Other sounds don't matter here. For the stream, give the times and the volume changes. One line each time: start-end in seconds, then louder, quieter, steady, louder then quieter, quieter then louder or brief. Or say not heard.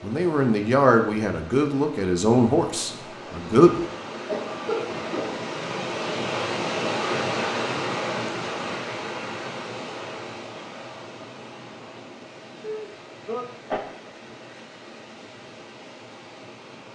0.0-16.9 louder then quieter.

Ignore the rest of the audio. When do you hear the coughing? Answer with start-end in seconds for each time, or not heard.
4.2-5.4, 12.6-13.8.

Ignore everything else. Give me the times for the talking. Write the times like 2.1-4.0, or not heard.
0.0-3.9.